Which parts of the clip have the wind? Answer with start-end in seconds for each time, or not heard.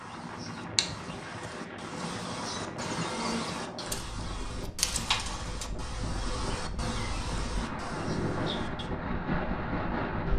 0.0-10.3.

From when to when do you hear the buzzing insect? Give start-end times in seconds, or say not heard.
0.0-8.9.